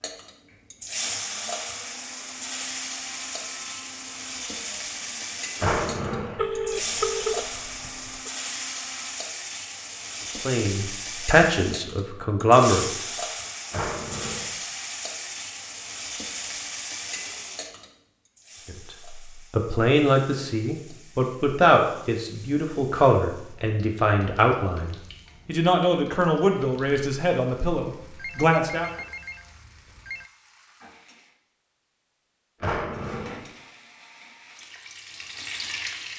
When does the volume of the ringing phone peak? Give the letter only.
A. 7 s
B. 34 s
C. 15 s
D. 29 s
A.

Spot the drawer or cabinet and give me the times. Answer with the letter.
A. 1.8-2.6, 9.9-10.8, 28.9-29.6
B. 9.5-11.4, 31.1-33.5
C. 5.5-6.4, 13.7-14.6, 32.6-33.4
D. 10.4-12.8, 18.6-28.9
C.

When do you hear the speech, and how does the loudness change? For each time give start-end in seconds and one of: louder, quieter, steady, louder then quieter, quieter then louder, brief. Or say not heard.
10.4-12.8 brief
18.6-28.9 steady.